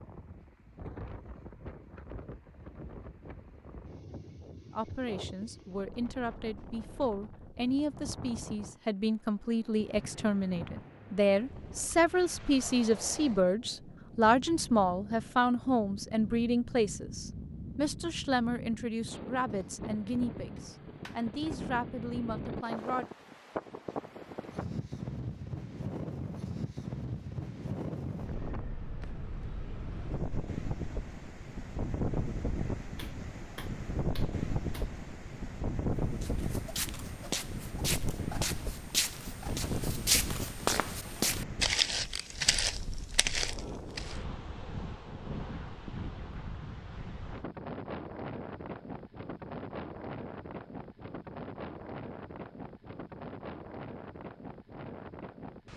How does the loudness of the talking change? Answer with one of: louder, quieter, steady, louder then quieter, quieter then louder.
louder then quieter.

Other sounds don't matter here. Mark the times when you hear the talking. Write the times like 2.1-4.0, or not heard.
4.7-23.1.